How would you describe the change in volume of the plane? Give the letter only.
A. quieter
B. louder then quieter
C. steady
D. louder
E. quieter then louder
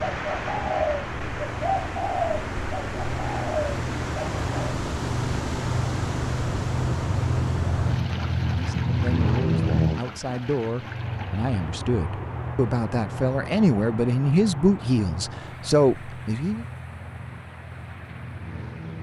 B.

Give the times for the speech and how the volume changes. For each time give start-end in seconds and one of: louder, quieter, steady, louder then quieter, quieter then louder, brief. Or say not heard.
8.5-16.6 louder.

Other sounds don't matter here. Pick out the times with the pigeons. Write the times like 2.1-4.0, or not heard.
0.0-4.8.